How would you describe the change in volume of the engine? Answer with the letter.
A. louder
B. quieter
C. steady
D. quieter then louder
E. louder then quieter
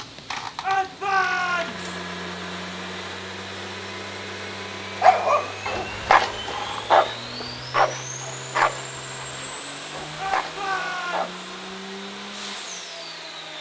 C.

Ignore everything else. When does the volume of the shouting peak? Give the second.
1 s.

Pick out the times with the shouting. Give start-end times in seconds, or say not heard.
0.6-1.9, 10.2-11.3.